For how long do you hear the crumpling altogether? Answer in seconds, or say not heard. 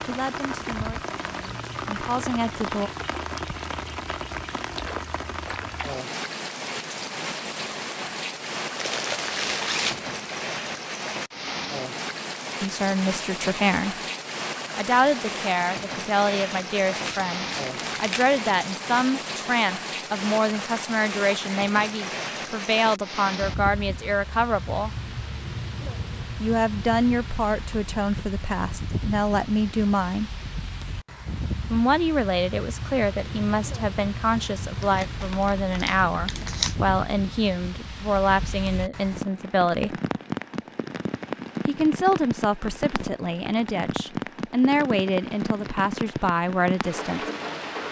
5 s.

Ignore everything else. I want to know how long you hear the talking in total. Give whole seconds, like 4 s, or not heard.
32 s.